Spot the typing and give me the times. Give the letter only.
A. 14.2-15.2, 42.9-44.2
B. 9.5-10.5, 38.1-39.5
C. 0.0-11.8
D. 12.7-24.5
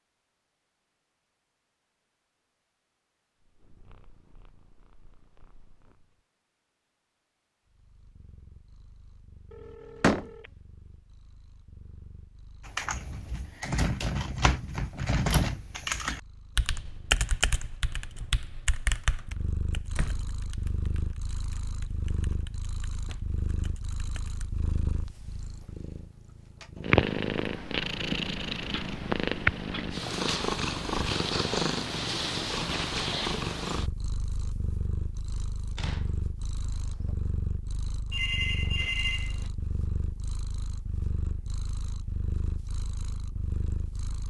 D.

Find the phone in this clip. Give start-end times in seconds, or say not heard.
9.5-10.5, 38.1-39.5.